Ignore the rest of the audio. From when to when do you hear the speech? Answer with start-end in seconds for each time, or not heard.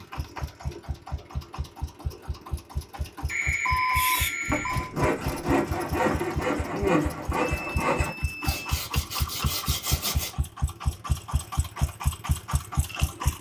not heard.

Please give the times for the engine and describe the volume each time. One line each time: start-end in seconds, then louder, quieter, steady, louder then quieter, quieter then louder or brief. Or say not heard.
0.0-13.3 louder.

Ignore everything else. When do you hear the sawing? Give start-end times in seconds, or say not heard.
3.9-10.3.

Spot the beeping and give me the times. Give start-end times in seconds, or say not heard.
3.2-4.9, 7.4-8.6.